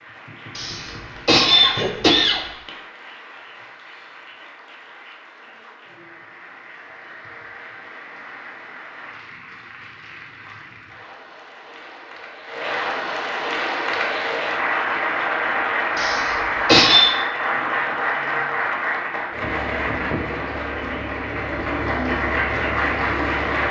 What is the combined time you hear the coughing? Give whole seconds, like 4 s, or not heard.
3 s.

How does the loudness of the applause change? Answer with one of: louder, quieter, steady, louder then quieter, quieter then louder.
louder.